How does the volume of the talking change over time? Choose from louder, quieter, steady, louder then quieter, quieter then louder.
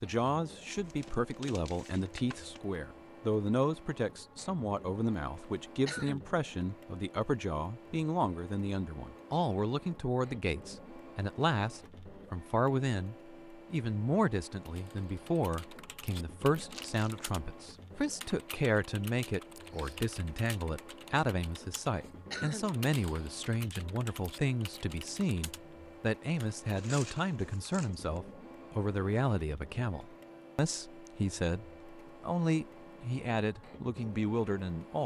steady.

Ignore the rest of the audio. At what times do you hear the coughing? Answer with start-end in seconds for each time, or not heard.
5.3-6.3, 21.8-22.8.